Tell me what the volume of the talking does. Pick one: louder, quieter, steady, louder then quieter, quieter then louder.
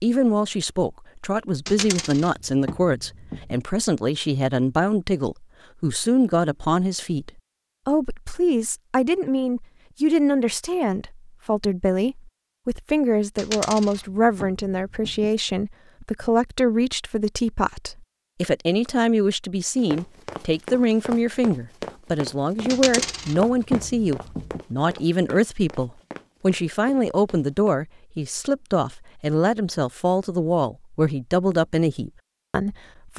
steady.